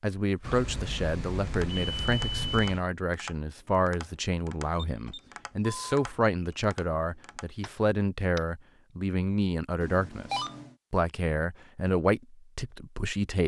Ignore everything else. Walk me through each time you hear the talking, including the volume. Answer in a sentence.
The talking can be heard from 0.0 to 13.4 s, at a steady volume.